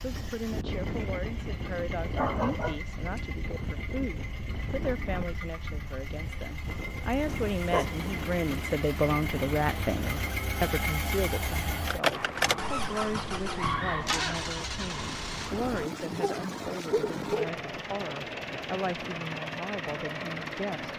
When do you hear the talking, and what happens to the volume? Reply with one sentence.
You can hear the talking from 0.0 to 20.9 s, getting louder then quieter.